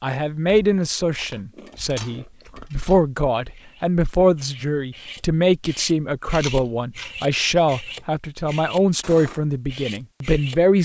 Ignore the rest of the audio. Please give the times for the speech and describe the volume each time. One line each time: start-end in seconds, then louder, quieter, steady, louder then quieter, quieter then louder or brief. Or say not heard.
0.0-10.8 steady.